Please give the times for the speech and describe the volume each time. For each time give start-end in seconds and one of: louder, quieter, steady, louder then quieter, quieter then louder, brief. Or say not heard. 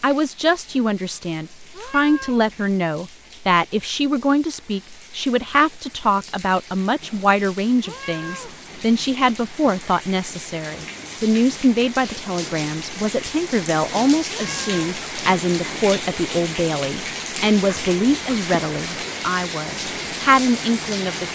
0.0-21.2 steady.